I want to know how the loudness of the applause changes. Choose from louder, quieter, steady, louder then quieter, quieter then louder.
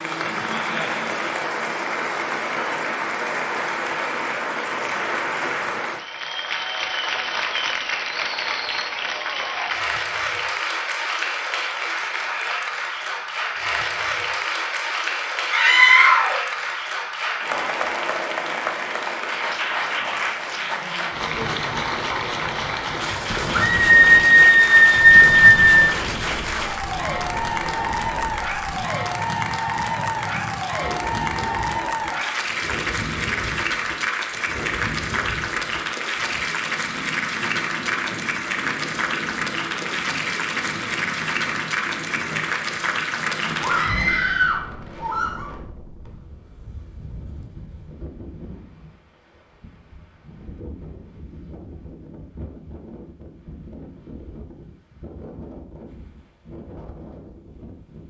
steady.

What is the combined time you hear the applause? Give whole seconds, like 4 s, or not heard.
44 s.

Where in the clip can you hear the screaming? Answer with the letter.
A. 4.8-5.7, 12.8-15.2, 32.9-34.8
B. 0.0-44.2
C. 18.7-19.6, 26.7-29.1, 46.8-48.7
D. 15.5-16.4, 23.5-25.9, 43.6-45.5
D.